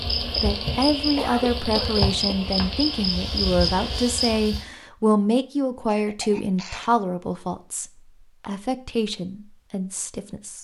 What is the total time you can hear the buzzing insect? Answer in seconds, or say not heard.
5 s.